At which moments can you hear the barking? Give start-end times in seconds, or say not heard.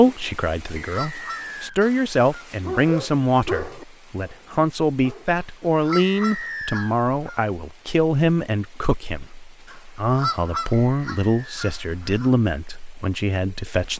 2.6-5.5.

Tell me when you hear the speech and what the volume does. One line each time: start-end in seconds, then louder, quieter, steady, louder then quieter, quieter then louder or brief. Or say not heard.
0.0-13.9 steady.